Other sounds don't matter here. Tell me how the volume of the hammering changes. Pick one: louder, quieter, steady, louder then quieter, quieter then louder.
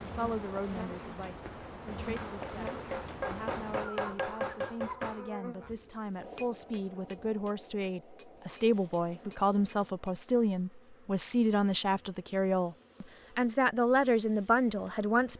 quieter.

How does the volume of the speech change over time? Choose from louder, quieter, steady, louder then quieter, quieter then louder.
louder.